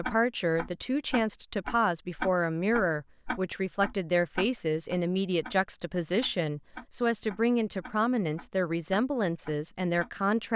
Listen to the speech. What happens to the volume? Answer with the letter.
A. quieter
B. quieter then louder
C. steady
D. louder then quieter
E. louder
C.